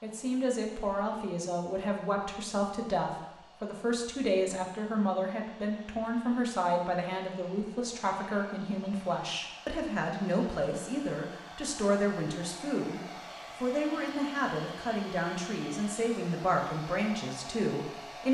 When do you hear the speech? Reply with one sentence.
The speech can be heard from 0.0 to 13.0 s and from 13.6 to 18.2 s.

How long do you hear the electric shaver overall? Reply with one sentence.
The electric shaver can't be heard in this clip.